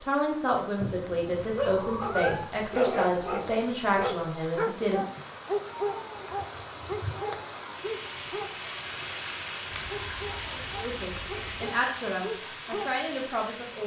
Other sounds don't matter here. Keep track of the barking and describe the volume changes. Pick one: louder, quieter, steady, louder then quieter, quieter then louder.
quieter.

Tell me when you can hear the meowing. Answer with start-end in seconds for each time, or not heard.
0.8-2.5, 5.0-7.5, 9.7-11.7.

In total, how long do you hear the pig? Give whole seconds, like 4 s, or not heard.
not heard.